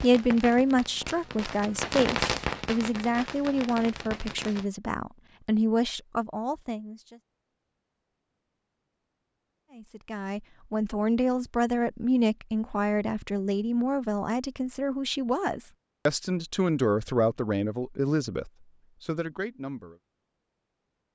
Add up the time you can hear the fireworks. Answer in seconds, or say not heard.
5 s.